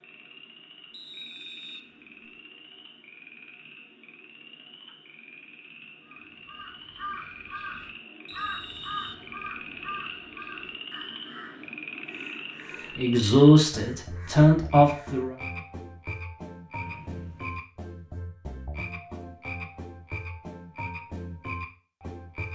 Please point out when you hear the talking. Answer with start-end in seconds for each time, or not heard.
12.9-15.3.